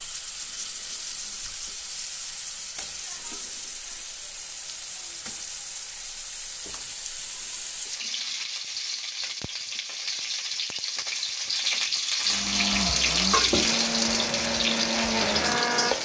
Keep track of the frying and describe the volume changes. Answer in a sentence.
The loudness of the frying goes up.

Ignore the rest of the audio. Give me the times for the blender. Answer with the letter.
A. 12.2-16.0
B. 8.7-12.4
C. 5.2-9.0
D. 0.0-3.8
A.